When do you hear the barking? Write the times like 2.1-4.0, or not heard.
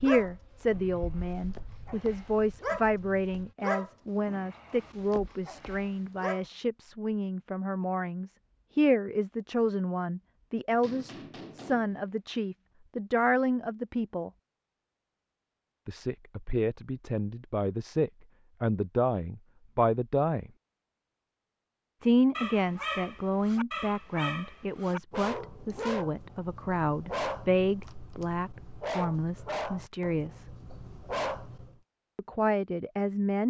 0.0-6.5, 22.4-31.8.